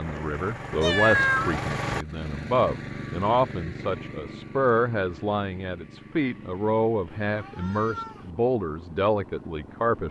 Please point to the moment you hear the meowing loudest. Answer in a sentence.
The volume of the meowing peaks at 1 second.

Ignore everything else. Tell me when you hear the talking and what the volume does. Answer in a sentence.
The talking can be heard from 0.0 to 10.0 s, at a steady volume.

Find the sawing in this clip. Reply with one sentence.
You can't hear the sawing here.